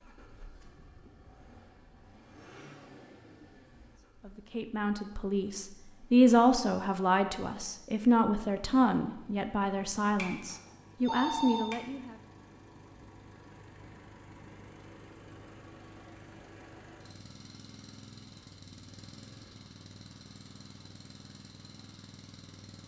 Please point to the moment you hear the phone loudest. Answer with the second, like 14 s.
11 s.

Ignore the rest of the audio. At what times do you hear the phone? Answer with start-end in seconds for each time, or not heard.
10.2-11.8.